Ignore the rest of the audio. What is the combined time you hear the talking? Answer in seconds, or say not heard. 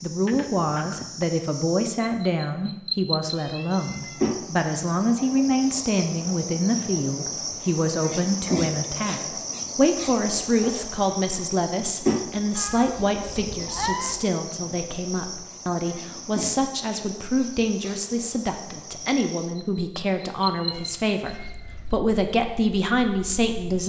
24 s.